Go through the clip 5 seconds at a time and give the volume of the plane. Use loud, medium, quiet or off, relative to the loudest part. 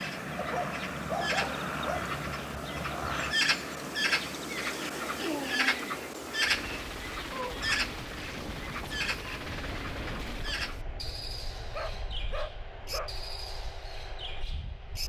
loud, medium, medium.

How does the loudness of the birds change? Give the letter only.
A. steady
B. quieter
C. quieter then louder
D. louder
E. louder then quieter
E.